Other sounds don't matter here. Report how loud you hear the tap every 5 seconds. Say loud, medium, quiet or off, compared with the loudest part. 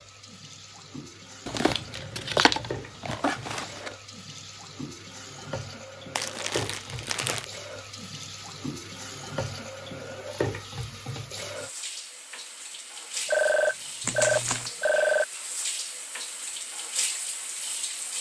medium, loud, loud, loud.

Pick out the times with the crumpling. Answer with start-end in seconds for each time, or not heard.
1.4-3.9, 6.2-7.5, 14.0-14.7.